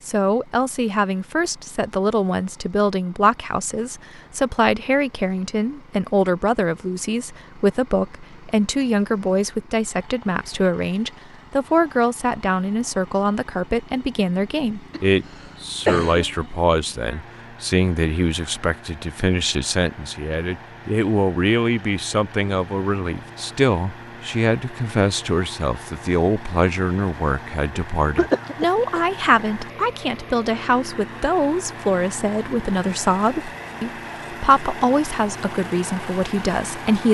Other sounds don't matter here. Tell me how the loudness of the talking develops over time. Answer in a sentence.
The volume of the talking stays about the same.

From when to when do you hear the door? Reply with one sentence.
You can't hear the door here.